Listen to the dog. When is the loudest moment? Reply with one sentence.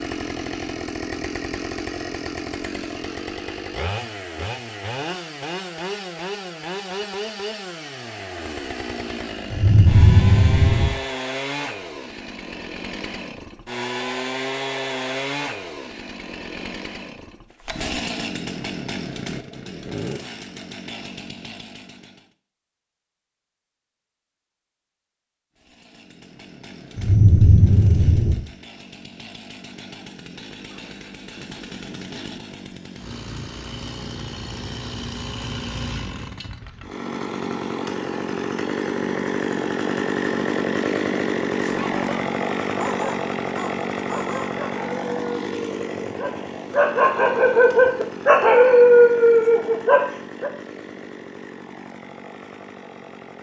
The loudest moment of the dog is at 49 seconds.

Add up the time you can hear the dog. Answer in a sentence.
You can hear the dog for 9 seconds altogether.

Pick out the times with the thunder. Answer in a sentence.
You can hear the thunder from 9.5 to 10.9 s and from 26.9 to 28.4 s.